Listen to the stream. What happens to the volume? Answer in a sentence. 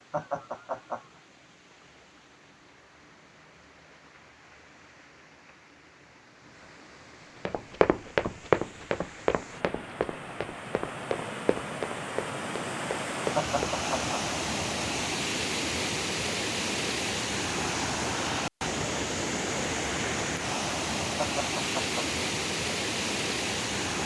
The loudness of the stream goes up.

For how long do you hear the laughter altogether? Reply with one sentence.
The laughter can be heard for 3 seconds in total.